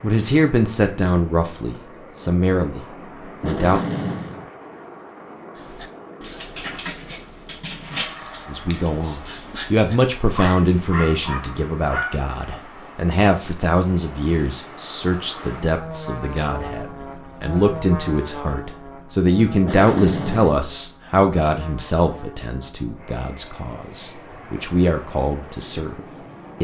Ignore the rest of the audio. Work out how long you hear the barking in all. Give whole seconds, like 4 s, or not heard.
7 s.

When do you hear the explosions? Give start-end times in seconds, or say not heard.
3.4-4.5, 19.6-20.6.